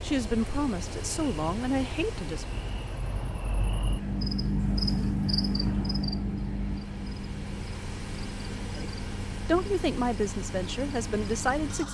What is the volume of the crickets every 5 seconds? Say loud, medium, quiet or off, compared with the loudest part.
loud, loud, medium.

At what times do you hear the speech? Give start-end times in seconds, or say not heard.
0.0-2.5, 8.8-11.8.